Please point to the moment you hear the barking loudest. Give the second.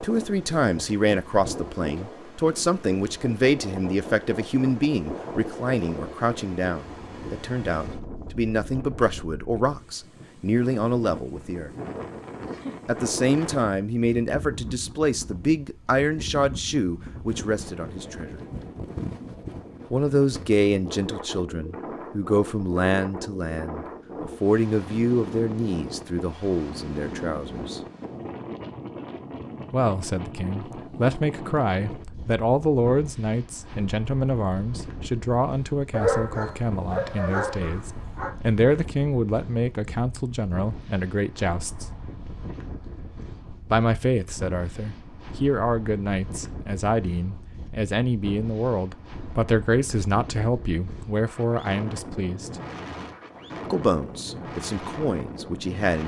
36 s.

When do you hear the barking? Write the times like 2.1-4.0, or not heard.
35.9-38.4.